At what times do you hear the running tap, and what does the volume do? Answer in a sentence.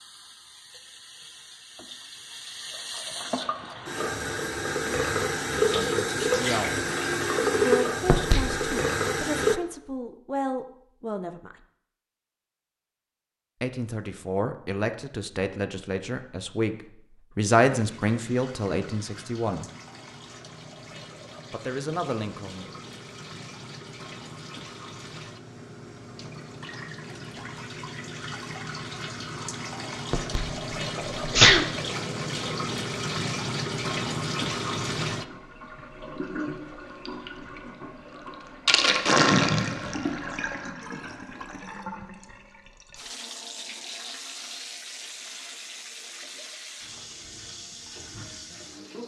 The running tap can be heard from 0.0 to 9.6 s, getting louder; and from 17.7 to 49.0 s, getting louder then quieter.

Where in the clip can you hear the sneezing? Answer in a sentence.
You can hear the sneezing from 8.1 to 8.7 s and from 30.1 to 31.6 s.